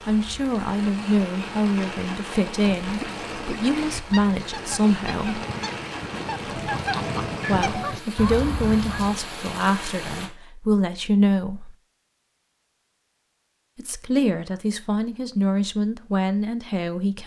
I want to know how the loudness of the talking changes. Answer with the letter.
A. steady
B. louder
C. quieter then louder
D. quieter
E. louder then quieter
A.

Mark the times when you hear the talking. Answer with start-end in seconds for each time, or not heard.
0.1-5.4, 7.5-11.8, 13.8-17.2.